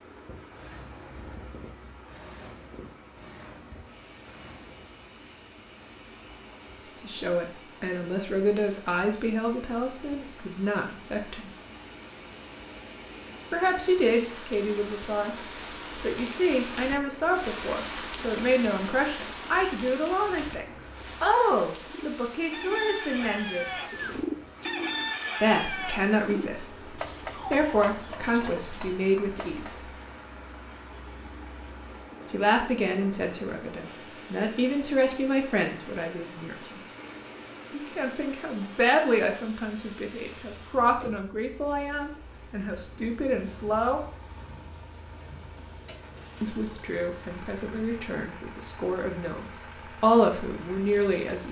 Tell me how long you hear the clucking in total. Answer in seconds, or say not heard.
8 s.